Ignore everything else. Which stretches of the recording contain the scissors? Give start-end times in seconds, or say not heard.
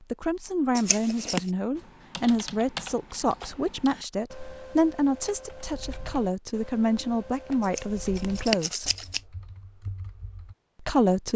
0.8-1.5, 7.6-9.2.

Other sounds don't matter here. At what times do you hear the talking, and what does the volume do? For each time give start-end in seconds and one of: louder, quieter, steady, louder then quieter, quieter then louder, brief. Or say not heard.
0.1-8.9 steady
10.8-11.3 brief.